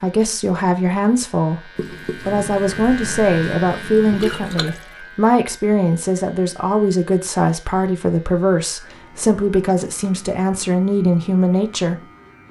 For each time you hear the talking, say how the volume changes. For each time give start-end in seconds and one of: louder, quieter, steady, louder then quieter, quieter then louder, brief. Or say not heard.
0.0-12.0 steady.